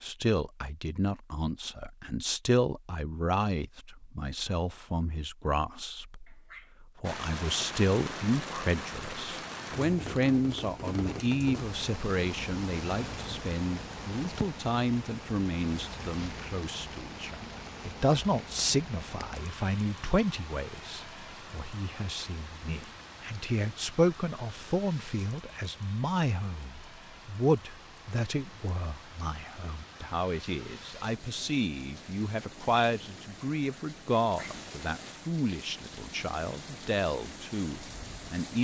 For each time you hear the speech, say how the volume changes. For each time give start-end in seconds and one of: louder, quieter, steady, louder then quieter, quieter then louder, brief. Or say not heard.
0.0-38.5 steady.